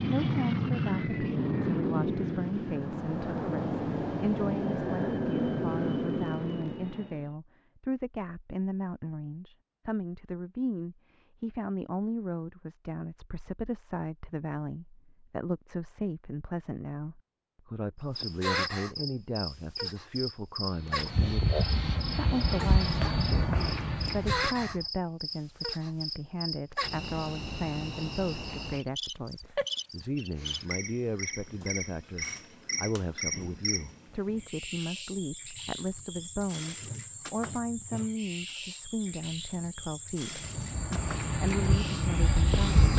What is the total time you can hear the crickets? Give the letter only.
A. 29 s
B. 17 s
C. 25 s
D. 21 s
C.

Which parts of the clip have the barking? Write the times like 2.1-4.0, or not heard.
not heard.